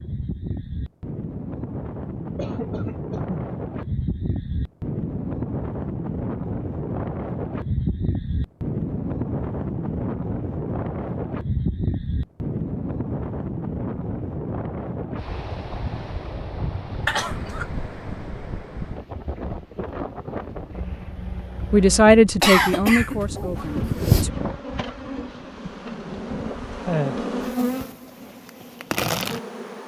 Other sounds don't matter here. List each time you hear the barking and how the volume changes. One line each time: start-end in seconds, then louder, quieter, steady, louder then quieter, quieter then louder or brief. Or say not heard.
not heard.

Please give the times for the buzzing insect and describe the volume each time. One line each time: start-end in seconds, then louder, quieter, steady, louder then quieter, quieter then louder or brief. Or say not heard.
23.6-29.8 louder.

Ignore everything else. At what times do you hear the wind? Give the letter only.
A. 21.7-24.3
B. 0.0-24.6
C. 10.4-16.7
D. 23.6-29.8
B.